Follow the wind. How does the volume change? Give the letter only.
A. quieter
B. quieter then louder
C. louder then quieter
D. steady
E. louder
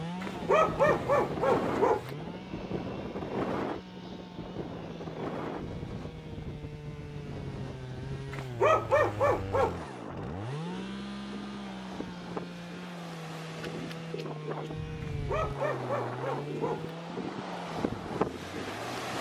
B.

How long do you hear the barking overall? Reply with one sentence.
You can hear the barking for 5 seconds altogether.